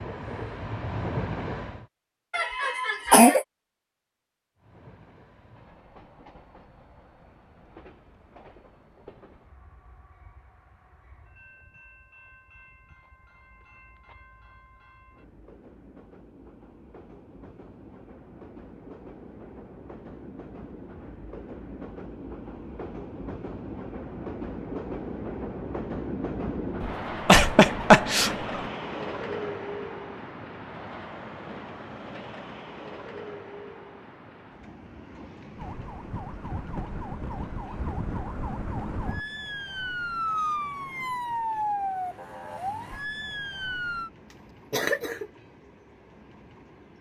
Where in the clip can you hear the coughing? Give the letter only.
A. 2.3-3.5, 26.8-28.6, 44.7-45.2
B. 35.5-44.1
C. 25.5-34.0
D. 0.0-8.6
A.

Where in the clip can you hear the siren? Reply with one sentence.
You can hear the siren from 35.5 to 44.1 s.